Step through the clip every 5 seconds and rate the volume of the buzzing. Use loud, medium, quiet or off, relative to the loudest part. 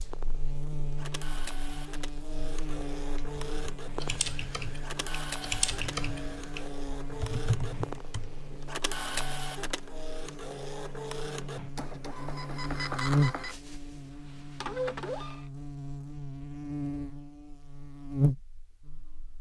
medium, medium, loud, loud.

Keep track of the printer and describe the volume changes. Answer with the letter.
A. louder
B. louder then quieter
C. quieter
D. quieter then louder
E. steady
A.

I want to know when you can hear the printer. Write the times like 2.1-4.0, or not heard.
0.0-15.4.